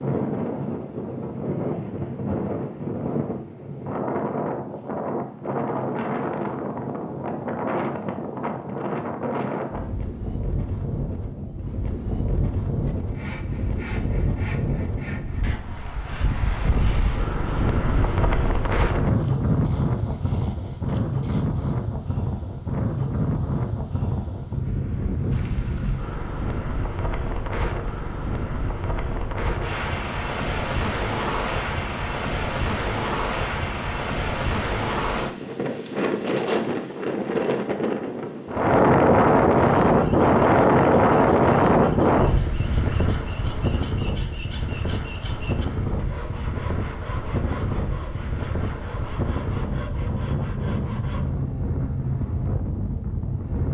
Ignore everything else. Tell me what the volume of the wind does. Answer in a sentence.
The loudness of the wind goes up, then down.